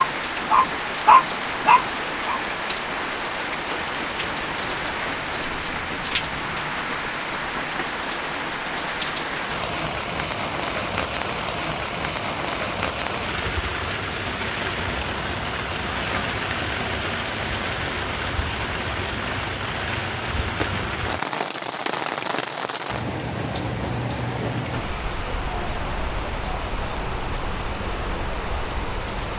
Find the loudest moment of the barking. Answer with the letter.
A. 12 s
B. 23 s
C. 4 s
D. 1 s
D.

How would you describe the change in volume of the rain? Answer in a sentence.
The loudness of the rain stays about the same.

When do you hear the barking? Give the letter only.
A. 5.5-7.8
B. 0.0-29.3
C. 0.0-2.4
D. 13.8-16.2
C.